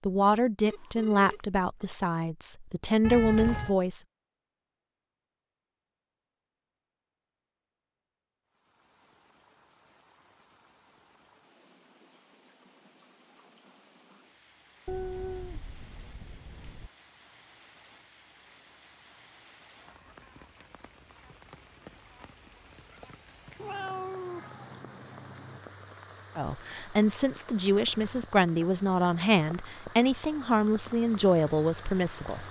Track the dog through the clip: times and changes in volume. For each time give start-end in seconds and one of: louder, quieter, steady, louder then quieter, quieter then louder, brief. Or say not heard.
not heard.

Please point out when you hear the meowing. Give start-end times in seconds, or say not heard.
3.0-3.8, 14.8-16.9, 23.6-25.6.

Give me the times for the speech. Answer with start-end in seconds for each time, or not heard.
0.1-4.0, 26.4-32.4.